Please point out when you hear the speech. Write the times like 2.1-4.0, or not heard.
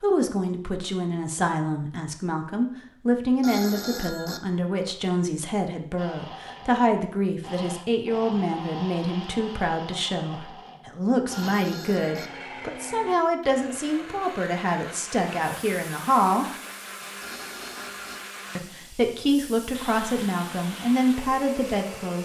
0.0-16.4, 18.6-22.2.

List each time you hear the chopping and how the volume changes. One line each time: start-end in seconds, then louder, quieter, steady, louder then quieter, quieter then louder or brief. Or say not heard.
not heard.